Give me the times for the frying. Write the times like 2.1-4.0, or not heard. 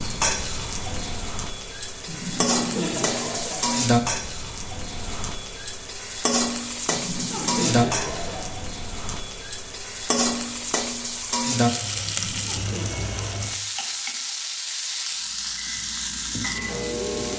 0.0-17.3.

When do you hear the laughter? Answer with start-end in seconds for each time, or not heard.
2.0-3.9, 6.9-8.6, 12.0-13.5.